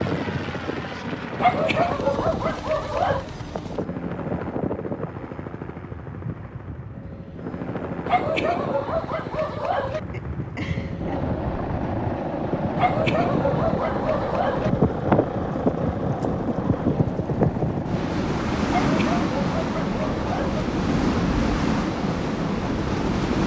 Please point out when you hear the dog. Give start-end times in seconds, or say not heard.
1.4-3.3, 8.1-10.0, 12.8-14.7, 18.8-20.6.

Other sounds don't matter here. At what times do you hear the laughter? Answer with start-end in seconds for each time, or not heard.
10.1-11.3.